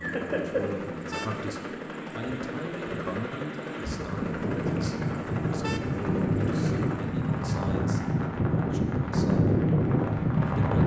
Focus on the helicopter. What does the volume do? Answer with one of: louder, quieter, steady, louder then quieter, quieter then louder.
steady.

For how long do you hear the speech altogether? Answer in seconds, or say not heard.
11 s.